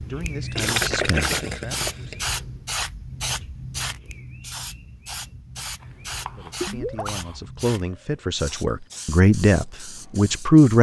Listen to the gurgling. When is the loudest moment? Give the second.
1 s.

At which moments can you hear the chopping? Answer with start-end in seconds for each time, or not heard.
0.4-1.9, 5.8-7.5.